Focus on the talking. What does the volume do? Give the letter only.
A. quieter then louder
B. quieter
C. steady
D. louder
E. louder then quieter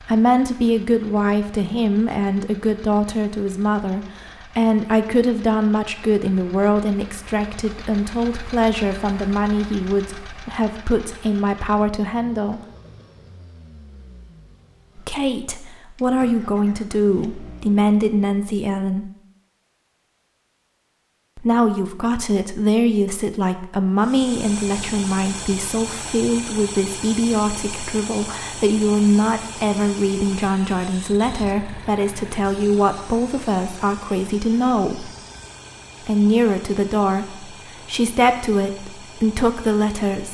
C.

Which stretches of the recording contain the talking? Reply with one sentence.
You can hear the talking from 0.0 to 12.6 s, from 14.9 to 19.1 s, from 21.4 to 35.1 s and from 36.0 to 40.2 s.